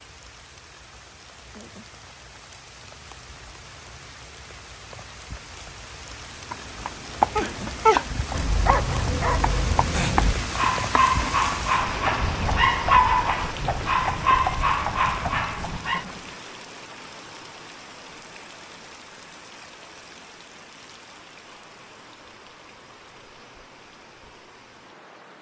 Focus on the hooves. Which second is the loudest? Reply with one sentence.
The loudest moment of the hooves is at 7 seconds.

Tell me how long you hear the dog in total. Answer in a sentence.
You can hear the dog for 9 seconds altogether.